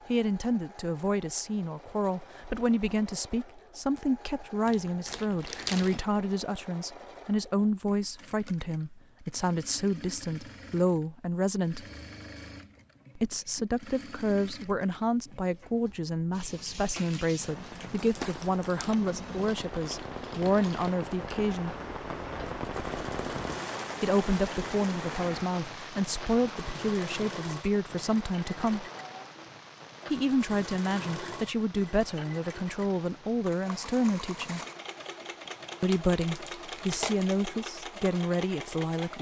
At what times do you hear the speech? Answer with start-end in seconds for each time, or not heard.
0.1-11.8, 13.2-21.8, 24.0-28.9, 30.1-34.6, 35.8-39.1.